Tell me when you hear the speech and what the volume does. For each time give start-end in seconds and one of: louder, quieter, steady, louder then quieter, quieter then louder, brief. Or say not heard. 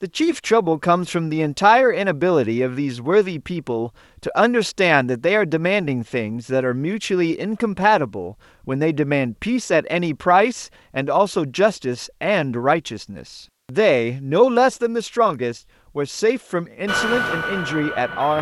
0.0-18.3 steady.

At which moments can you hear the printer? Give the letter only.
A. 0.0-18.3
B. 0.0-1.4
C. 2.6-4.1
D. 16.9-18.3
D.